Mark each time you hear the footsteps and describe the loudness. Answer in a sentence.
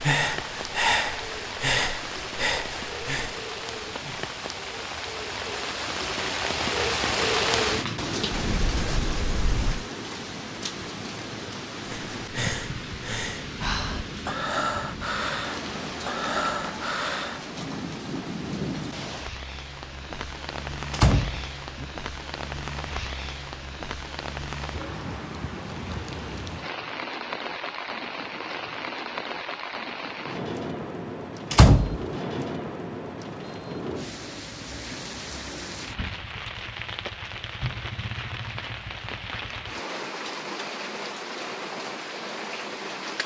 You can't hear the footsteps here.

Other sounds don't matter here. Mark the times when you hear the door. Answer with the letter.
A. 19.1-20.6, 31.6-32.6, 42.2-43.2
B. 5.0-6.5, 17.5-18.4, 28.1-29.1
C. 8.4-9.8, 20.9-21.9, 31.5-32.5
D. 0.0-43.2
C.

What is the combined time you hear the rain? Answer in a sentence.
You can hear the rain for 43 seconds altogether.